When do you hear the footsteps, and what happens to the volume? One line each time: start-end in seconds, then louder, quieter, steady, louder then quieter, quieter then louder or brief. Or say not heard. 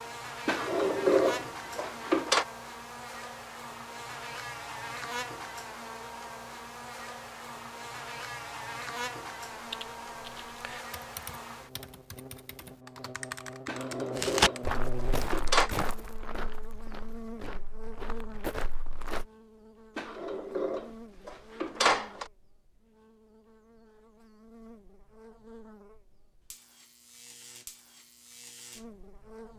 14.2-19.2 quieter then louder.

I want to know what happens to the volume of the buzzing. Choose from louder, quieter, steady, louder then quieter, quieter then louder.
quieter.